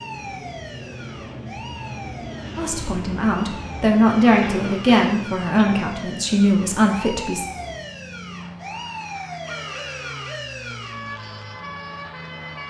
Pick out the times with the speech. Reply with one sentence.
You can hear the speech from 2.5 to 7.5 s.